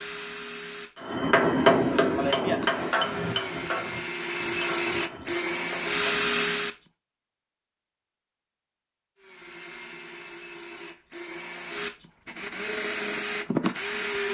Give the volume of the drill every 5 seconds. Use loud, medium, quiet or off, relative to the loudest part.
medium, loud, medium.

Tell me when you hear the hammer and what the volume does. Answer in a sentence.
The hammer can be heard from 0.9 to 6.3 s, getting quieter.